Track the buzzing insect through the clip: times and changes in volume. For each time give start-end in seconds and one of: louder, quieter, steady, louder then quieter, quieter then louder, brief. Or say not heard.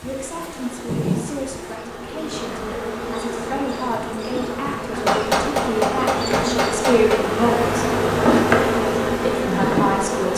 0.0-10.3 louder.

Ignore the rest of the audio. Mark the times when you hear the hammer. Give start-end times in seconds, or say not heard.
4.9-7.2.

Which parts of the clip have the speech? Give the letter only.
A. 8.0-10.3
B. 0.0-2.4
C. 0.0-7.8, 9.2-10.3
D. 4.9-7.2
C.